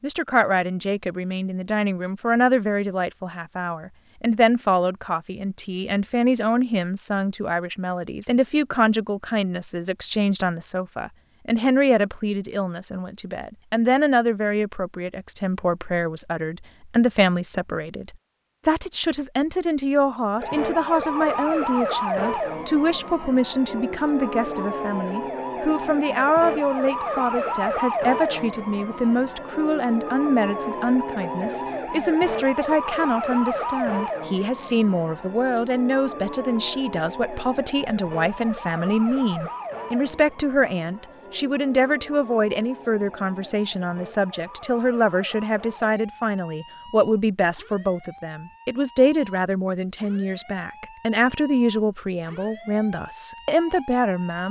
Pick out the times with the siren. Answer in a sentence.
The siren can be heard from 20.4 to 54.4 s.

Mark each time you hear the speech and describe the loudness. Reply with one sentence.
The speech can be heard from 0.0 to 54.4 s, at a steady volume.